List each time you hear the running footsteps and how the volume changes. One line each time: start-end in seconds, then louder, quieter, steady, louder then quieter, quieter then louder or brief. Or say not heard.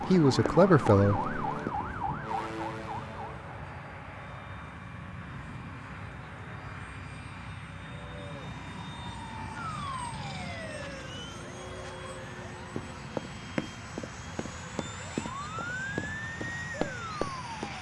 0.0-1.9 brief
12.8-17.7 quieter then louder.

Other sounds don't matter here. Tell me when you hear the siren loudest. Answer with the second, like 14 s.
1 s.